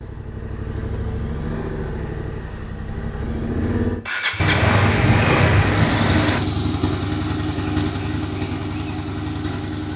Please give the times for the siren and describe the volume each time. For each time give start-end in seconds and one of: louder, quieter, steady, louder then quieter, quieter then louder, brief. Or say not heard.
not heard.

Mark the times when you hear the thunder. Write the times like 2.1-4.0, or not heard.
4.3-6.4.